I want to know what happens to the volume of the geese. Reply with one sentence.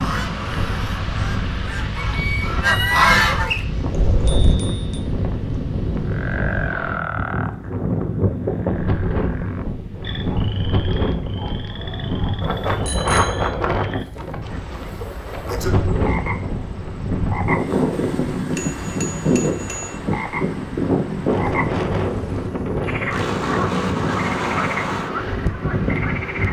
The loudness of the geese goes up, then down.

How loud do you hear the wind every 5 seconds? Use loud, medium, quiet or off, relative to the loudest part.
medium, loud, loud, loud, loud, loud.